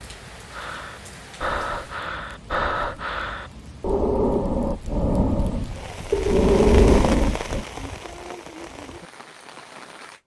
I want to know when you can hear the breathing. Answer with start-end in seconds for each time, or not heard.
0.5-7.7.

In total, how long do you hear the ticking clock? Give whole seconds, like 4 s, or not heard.
not heard.